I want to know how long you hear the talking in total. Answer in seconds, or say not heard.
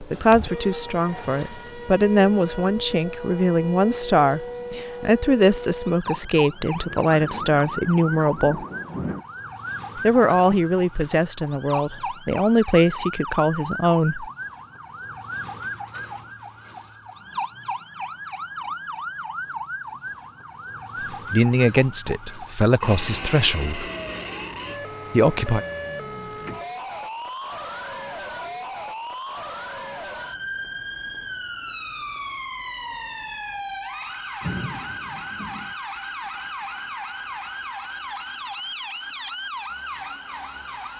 16 s.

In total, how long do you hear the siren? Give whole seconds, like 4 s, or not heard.
41 s.